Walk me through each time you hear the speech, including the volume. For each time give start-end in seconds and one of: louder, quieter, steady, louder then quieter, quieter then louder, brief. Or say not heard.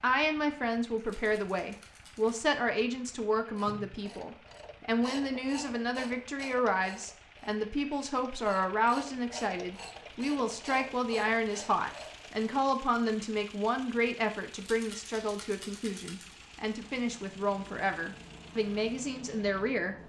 0.0-19.9 steady.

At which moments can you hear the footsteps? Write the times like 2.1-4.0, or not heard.
not heard.